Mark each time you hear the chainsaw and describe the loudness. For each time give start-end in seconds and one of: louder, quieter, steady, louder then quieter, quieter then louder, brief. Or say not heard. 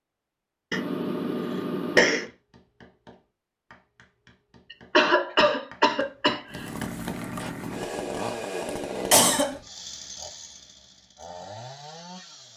6.5-12.5 quieter.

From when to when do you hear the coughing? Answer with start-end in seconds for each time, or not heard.
0.7-2.2, 5.0-6.5, 9.1-9.6.